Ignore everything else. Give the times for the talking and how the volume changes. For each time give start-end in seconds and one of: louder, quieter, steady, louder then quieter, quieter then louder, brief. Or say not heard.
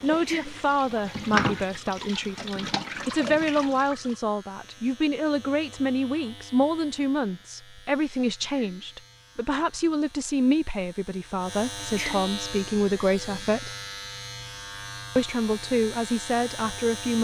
0.0-13.7 steady
15.2-17.1 brief.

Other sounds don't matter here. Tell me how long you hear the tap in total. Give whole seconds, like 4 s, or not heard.
4 s.